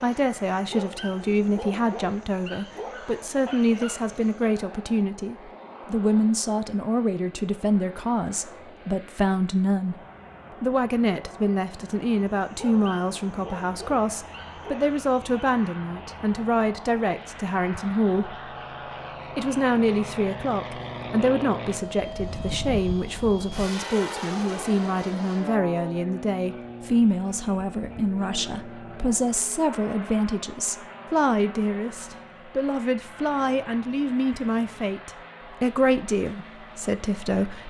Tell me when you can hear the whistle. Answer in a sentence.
You can't hear the whistle here.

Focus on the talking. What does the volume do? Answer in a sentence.
The loudness of the talking stays about the same.